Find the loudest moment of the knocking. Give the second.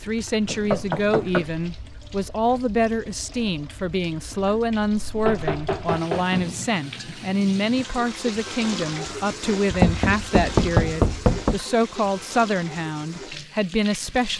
11 s.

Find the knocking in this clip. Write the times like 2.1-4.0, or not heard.
0.5-1.5, 5.2-7.2, 9.7-11.6.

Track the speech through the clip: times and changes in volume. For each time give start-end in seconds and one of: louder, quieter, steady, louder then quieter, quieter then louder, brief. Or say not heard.
0.0-14.3 steady.